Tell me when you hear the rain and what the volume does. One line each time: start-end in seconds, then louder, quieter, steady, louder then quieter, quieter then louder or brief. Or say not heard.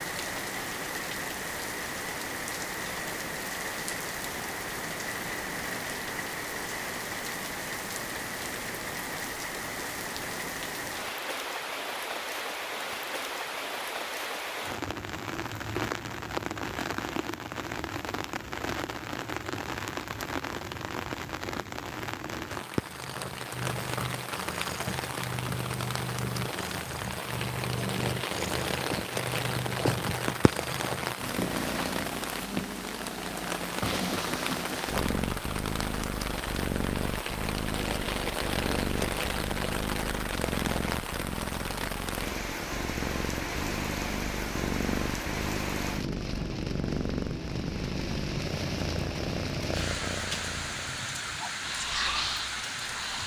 0.0-53.2 steady.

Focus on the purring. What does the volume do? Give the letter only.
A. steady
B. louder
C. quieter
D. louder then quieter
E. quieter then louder
A.